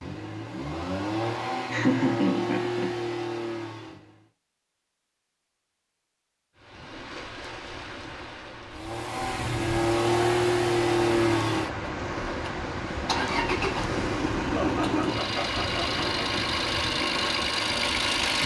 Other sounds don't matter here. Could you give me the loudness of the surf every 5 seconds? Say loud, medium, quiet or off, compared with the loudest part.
off, medium, loud, loud.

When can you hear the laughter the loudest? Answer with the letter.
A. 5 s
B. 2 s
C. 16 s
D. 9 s
B.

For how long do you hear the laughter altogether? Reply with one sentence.
You can hear the laughter for 3 seconds altogether.